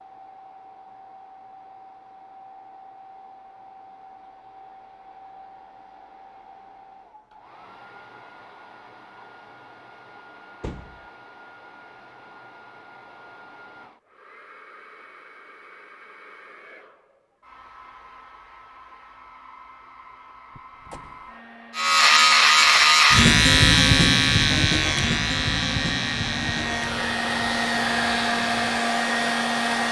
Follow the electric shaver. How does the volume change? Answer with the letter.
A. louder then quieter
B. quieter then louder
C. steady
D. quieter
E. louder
D.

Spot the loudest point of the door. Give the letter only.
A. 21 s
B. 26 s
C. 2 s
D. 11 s
D.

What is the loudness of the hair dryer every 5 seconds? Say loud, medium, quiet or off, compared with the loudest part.
quiet, quiet, quiet, quiet, quiet, loud.